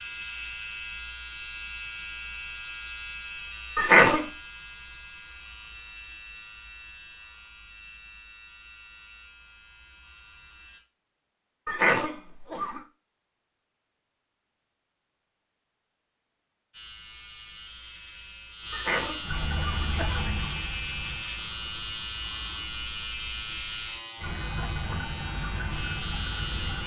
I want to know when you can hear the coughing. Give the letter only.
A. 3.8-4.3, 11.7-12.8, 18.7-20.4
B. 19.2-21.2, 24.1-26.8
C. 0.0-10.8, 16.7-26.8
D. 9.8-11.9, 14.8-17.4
A.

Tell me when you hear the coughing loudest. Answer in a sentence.
The loudest moment of the coughing is at 4 seconds.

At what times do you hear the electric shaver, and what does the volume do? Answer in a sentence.
The electric shaver can be heard from 0.0 to 10.8 s, getting quieter; and from 16.7 to 26.8 s, getting louder.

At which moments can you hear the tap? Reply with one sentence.
The tap can be heard from 19.2 to 21.2 s and from 24.1 to 26.8 s.